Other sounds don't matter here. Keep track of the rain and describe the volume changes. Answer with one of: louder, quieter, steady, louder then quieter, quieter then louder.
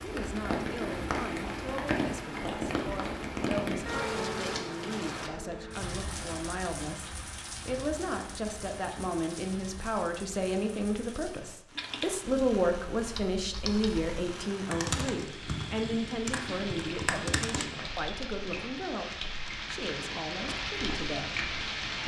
quieter then louder.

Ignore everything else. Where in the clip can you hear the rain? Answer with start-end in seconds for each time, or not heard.
0.0-22.0.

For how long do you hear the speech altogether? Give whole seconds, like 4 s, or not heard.
22 s.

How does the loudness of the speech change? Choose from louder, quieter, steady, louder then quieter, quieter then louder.
louder then quieter.